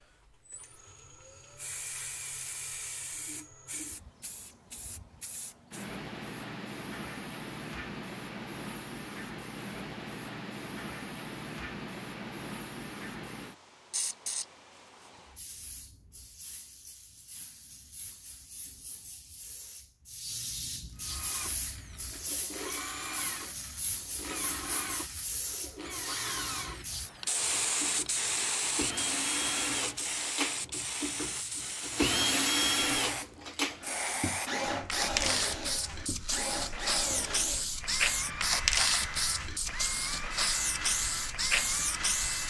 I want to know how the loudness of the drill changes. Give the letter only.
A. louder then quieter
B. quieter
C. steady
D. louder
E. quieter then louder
A.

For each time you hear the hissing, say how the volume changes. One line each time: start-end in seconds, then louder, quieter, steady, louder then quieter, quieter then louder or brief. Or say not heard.
0.0-42.4 louder.